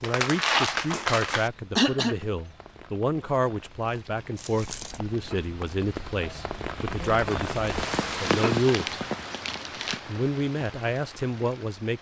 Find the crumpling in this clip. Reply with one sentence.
You can hear the crumpling from 0.0 to 1.5 s, from 4.3 to 5.0 s and from 8.1 to 10.0 s.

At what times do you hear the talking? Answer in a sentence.
The talking can be heard from 0.0 to 8.9 s and from 10.1 to 11.9 s.